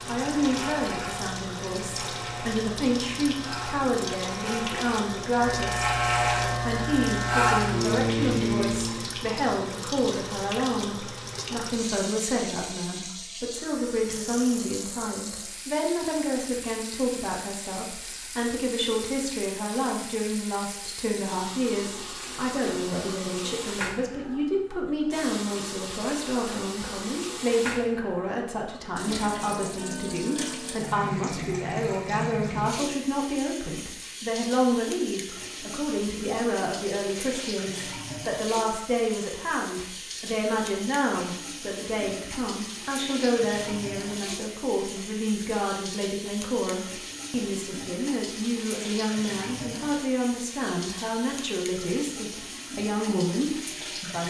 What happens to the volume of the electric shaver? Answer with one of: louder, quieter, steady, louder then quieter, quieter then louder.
louder.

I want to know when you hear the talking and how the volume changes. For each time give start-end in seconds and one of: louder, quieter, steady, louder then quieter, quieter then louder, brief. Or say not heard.
0.1-54.2 steady.